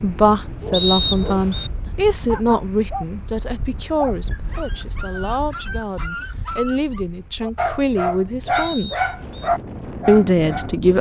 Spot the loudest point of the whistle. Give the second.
1 s.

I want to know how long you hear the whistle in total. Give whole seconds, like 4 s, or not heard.
2 s.